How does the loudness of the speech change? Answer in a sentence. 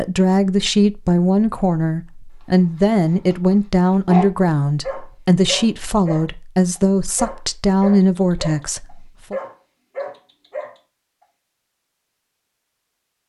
The loudness of the speech stays about the same.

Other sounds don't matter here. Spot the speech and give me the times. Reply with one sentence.
The speech can be heard from 0.0 to 9.3 s.